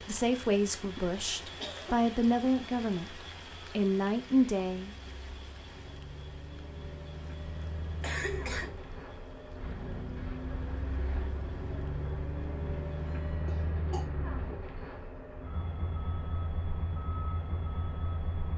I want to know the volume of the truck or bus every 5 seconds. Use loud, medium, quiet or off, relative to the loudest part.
quiet, medium, loud, loud.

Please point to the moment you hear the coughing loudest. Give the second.
8 s.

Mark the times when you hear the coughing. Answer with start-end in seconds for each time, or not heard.
0.8-2.1, 8.0-8.7, 13.4-14.1.